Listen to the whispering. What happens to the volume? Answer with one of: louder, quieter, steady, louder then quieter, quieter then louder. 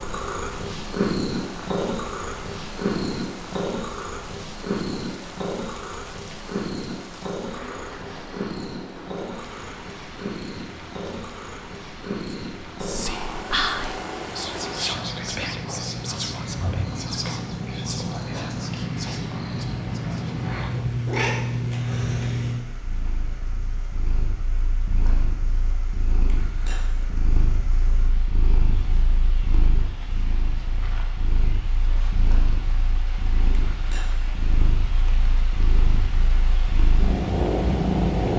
quieter.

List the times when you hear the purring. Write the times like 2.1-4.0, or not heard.
0.0-38.3.